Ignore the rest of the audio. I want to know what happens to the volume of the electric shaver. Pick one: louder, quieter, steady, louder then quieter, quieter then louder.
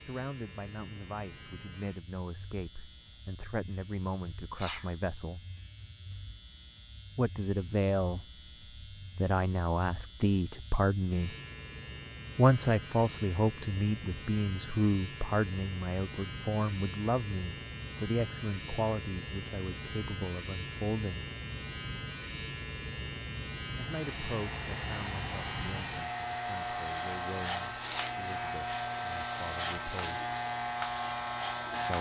louder.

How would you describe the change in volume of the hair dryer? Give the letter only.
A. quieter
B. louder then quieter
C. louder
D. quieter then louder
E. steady
E.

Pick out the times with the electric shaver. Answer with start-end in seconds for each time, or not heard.
0.0-31.9.